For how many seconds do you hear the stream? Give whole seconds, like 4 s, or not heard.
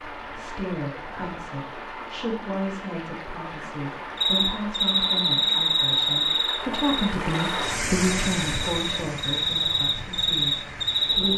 11 s.